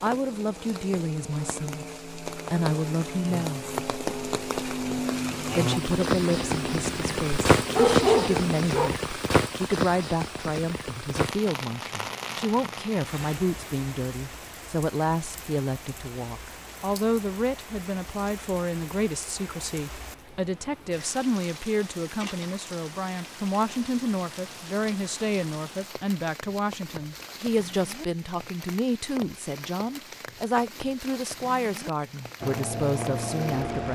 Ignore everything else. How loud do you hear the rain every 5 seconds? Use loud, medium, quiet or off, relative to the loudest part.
medium, loud, medium, quiet, quiet, quiet, quiet.